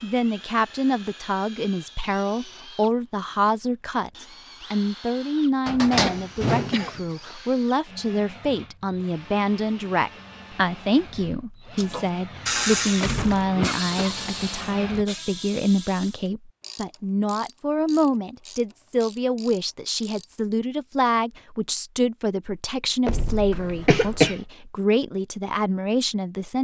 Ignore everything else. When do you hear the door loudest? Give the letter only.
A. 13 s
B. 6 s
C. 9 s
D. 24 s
B.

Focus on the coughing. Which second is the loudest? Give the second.
24 s.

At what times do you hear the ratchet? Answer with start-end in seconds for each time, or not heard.
11.8-20.4.